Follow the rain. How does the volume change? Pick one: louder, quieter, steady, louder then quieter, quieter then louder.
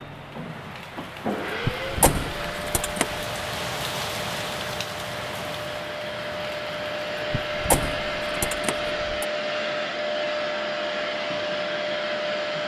louder then quieter.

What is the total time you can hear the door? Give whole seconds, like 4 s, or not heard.
3 s.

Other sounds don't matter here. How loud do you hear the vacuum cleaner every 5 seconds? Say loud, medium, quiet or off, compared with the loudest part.
medium, loud, loud.